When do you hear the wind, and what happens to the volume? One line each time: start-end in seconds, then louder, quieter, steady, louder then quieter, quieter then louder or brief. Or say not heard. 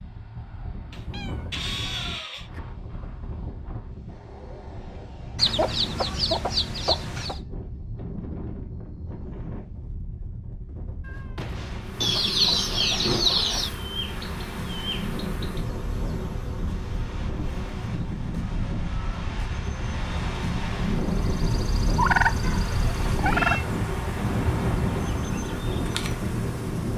0.0-26.9 louder.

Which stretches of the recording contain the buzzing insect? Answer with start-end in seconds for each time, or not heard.
11.8-26.9.